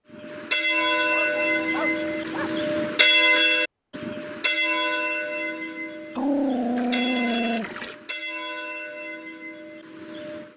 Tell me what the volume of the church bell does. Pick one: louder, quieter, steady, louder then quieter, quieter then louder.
quieter.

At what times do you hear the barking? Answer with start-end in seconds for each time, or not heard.
0.8-2.5, 6.2-7.7.